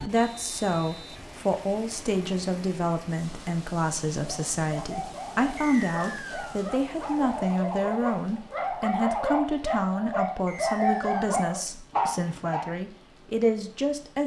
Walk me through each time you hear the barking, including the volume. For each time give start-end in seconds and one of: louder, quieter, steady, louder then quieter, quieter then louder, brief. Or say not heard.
4.2-12.7 louder.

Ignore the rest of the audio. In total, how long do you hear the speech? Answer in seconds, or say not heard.
14 s.